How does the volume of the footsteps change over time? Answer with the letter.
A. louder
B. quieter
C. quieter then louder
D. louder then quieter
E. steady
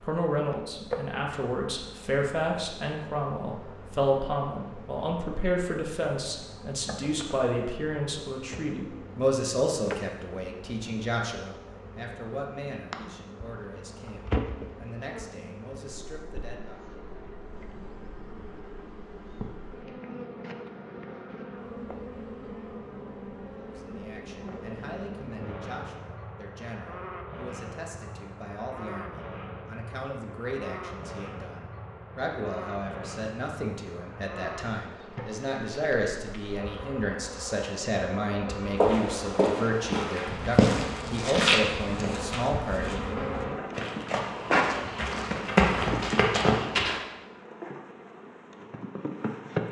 C.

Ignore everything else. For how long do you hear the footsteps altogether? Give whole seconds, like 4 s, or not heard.
8 s.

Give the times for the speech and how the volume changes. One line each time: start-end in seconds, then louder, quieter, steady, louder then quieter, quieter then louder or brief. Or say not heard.
0.0-16.8 quieter
23.6-43.2 louder.